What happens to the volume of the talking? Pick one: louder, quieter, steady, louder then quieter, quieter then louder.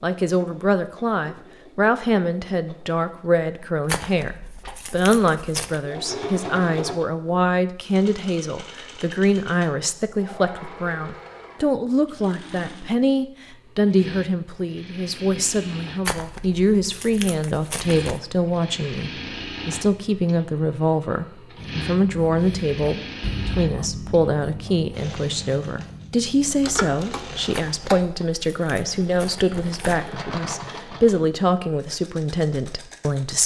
steady.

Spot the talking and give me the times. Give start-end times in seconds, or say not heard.
0.0-33.4.